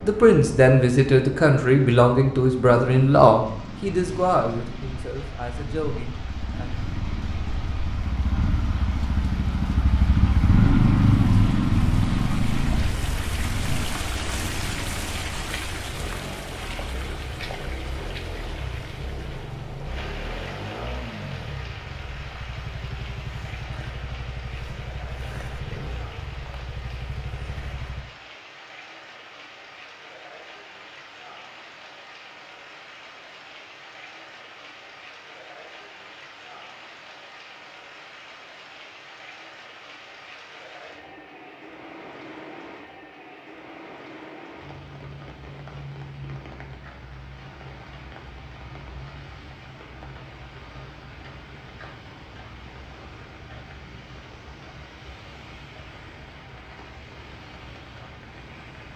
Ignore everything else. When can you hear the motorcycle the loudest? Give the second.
11 s.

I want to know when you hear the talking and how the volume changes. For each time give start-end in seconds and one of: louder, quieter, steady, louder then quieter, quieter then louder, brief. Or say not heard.
0.0-6.7 quieter.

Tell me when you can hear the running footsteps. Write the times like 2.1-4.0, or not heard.
not heard.